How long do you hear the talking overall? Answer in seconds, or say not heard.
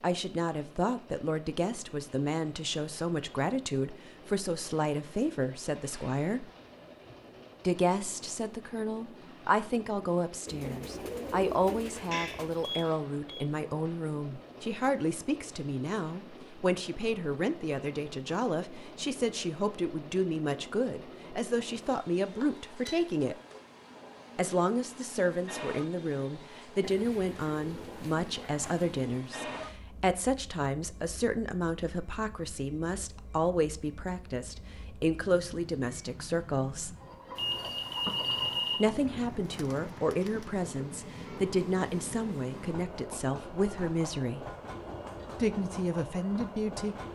42 s.